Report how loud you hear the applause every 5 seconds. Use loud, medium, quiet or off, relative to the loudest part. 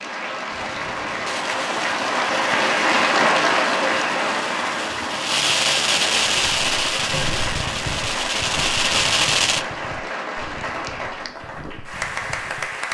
loud, medium, medium.